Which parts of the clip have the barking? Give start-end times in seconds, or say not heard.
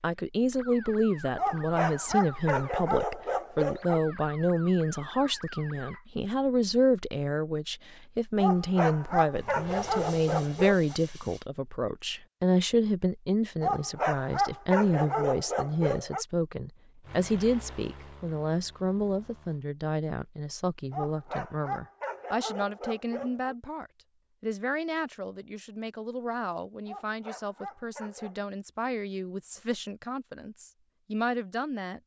1.4-4.0, 8.3-10.9, 13.6-16.2, 20.9-23.6, 26.9-28.4.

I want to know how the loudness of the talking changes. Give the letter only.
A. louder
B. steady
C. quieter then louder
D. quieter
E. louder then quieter
D.